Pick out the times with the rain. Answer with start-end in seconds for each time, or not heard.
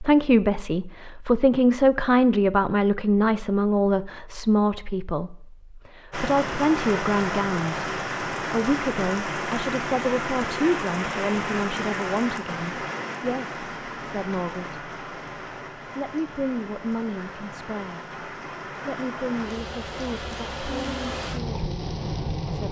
6.1-22.6.